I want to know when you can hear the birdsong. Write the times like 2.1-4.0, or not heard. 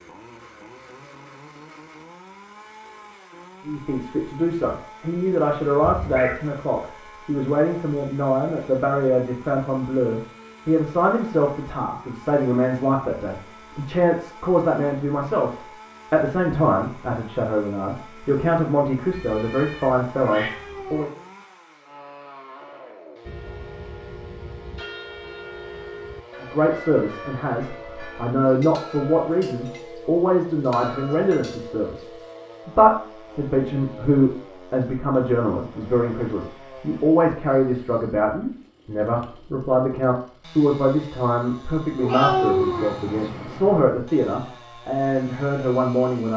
not heard.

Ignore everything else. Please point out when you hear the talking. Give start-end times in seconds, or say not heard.
3.6-21.1, 26.4-46.3.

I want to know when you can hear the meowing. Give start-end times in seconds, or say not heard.
5.8-6.3, 19.1-21.1, 42.0-43.9.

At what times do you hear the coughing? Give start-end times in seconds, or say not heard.
not heard.